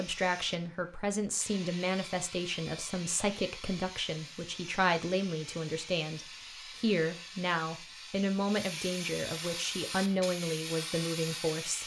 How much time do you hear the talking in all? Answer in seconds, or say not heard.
12 s.